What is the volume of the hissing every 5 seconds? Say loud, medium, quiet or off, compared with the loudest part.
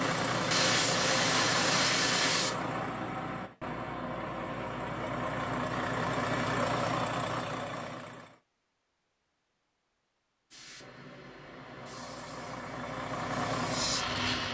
loud, off, medium.